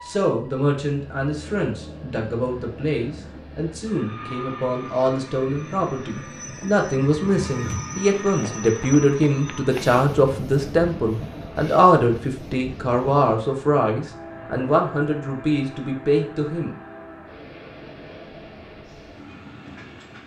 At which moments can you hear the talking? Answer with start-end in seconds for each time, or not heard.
0.1-16.8.